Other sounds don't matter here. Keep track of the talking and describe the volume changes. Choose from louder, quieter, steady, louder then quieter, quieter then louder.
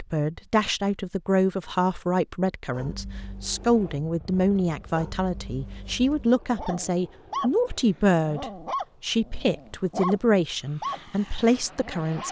steady.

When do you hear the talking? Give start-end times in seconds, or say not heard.
0.0-12.2.